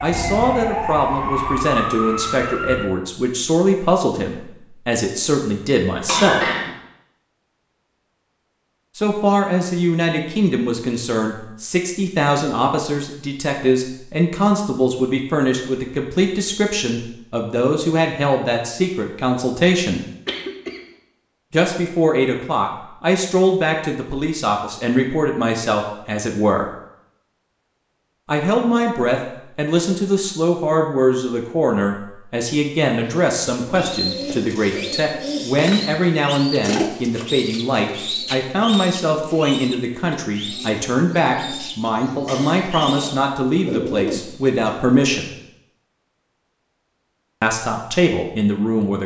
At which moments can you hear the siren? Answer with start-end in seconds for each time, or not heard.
0.0-2.9.